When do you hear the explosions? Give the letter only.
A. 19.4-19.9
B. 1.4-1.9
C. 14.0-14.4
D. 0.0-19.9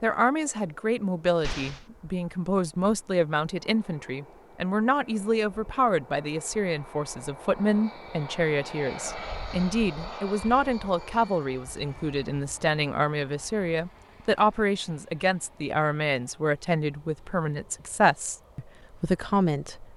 B.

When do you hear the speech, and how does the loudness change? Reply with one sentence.
The speech can be heard from 0.0 to 19.9 s, at a steady volume.